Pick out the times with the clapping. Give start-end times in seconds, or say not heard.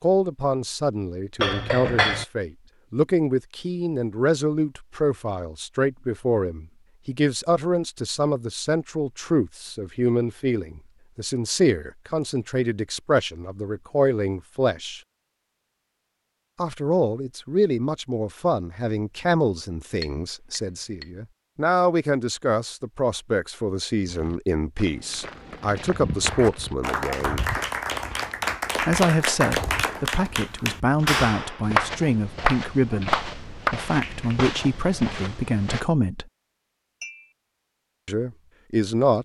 26.2-34.4.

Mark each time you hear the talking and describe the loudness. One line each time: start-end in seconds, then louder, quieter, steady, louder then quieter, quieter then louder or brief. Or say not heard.
0.0-15.0 steady
16.6-27.5 steady
28.8-36.2 steady
38.0-39.2 brief.